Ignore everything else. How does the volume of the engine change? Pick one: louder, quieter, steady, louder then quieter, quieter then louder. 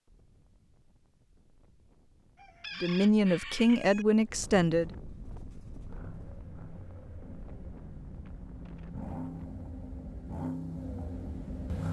louder.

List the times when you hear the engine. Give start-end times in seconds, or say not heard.
5.2-11.8.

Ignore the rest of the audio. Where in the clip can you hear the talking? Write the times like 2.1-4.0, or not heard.
2.8-5.0.